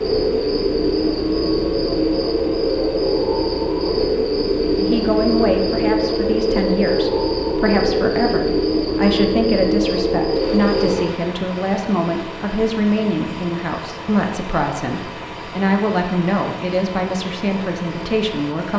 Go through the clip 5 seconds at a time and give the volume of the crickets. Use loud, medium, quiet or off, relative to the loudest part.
loud, loud, medium, quiet.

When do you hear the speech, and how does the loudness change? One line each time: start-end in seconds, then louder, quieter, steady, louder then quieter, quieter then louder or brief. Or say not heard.
4.8-18.7 steady.